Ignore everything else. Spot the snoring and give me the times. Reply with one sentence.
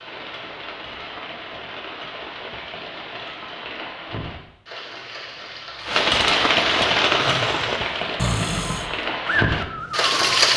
The snoring can be heard from 7.0 to 10.4 s.